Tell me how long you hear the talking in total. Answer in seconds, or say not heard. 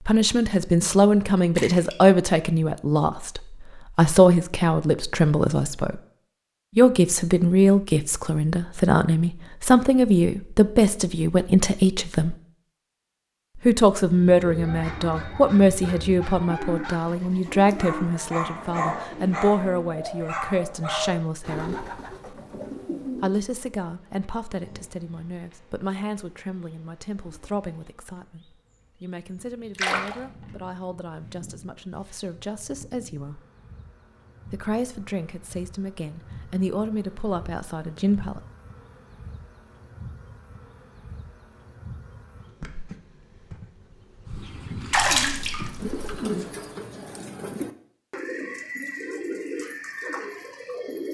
34 s.